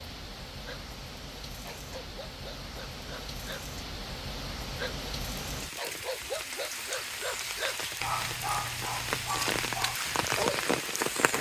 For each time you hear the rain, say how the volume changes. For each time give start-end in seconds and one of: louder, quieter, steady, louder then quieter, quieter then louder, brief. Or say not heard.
0.0-11.3 louder.